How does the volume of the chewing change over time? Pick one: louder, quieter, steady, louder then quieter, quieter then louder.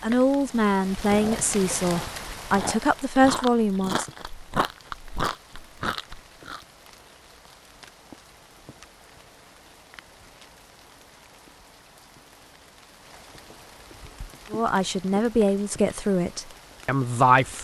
louder.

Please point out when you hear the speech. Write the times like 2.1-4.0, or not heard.
0.0-4.0, 14.5-17.5.